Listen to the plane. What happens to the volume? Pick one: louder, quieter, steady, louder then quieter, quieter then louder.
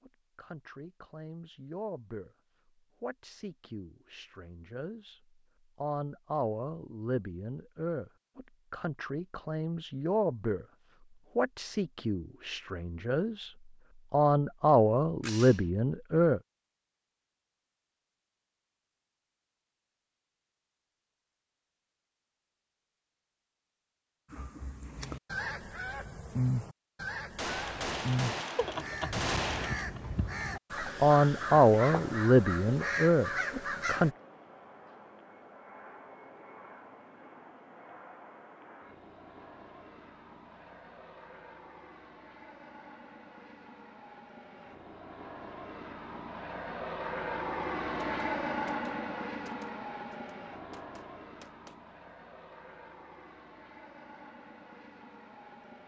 louder then quieter.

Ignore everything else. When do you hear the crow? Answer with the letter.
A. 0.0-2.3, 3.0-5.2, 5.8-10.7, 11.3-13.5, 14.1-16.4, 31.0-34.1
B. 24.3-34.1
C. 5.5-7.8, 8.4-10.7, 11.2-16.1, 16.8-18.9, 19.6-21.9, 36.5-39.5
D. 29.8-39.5
B.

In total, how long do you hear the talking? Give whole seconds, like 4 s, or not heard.
17 s.